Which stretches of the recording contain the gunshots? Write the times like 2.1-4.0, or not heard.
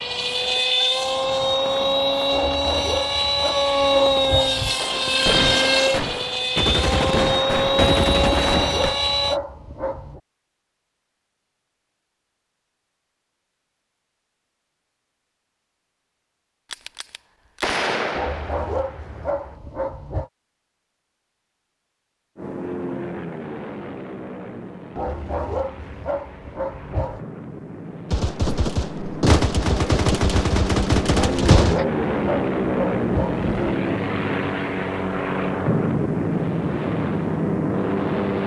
4.8-8.9, 16.7-19.4, 28.1-31.9.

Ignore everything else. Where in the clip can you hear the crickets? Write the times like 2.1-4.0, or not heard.
not heard.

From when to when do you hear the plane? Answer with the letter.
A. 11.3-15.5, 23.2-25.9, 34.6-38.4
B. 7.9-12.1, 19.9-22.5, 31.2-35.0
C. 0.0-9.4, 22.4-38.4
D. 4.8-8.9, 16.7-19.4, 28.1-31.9
C.